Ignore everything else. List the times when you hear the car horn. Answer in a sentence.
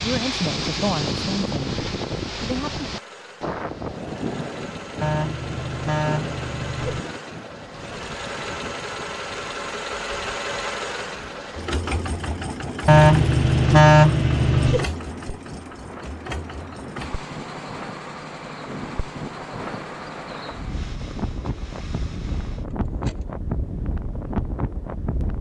You can hear the car horn from 5.0 to 7.0 s and from 12.8 to 14.8 s.